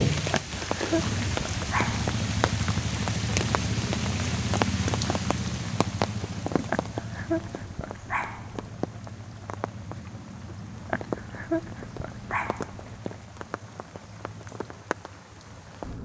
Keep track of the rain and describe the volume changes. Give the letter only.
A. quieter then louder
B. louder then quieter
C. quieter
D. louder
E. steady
C.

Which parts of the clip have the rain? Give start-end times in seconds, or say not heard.
0.0-16.0.